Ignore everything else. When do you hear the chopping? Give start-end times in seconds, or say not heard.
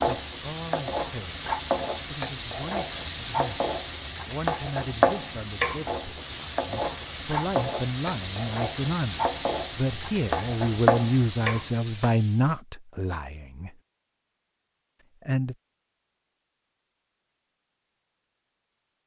not heard.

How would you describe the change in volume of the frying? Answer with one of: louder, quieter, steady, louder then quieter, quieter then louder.
steady.